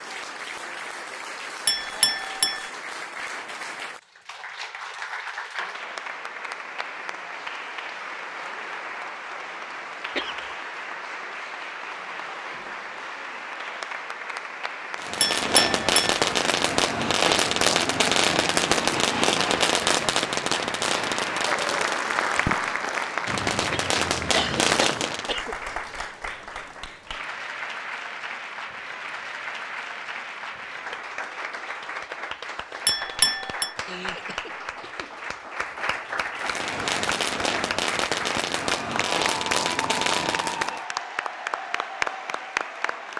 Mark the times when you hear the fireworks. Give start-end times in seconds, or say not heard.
14.9-25.3, 36.4-40.9.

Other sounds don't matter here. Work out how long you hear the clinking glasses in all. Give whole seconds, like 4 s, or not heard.
3 s.